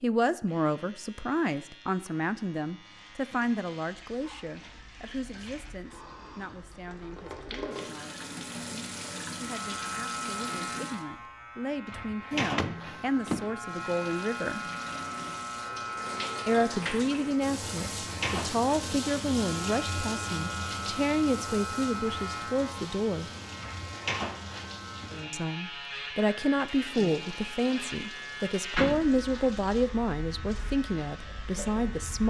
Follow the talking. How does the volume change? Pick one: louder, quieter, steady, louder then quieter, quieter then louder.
quieter then louder.